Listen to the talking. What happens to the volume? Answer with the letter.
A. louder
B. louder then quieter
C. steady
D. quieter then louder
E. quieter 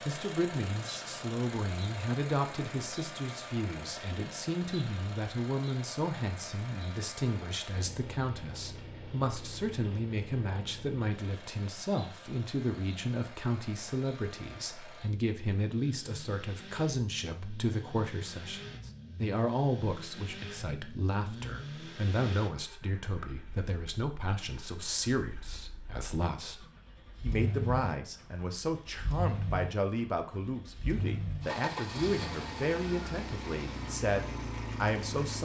C.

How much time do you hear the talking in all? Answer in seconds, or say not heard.
35 s.